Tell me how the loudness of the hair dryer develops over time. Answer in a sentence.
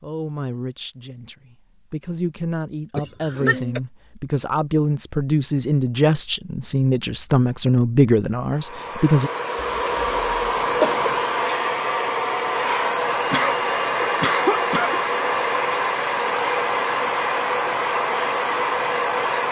The loudness of the hair dryer stays about the same.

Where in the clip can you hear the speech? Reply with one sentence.
The speech can be heard from 0.0 to 9.3 s.